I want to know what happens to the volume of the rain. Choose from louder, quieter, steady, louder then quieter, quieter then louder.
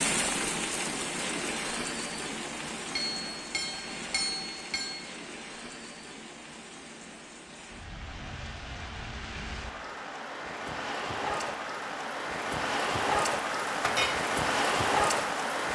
quieter then louder.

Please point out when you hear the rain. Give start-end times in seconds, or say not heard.
0.0-15.7.